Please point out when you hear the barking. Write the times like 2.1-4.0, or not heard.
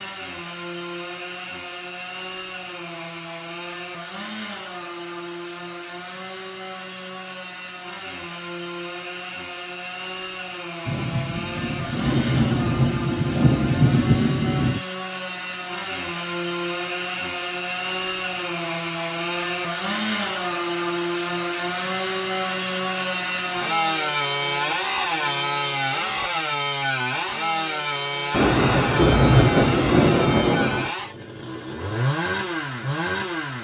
not heard.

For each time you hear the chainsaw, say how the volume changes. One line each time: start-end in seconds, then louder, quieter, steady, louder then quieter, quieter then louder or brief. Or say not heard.
0.0-33.5 louder.